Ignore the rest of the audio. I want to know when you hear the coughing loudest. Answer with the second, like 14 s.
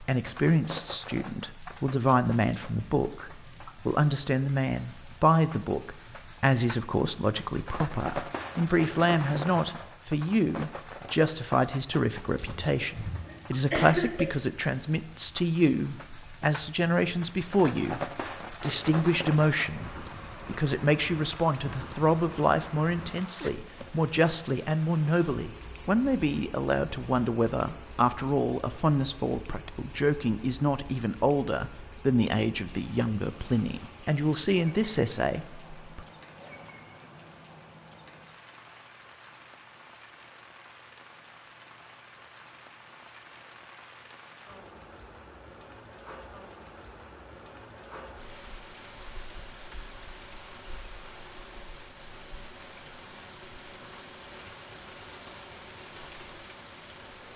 14 s.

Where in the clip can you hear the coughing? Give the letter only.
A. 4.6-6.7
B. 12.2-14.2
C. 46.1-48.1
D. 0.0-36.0
B.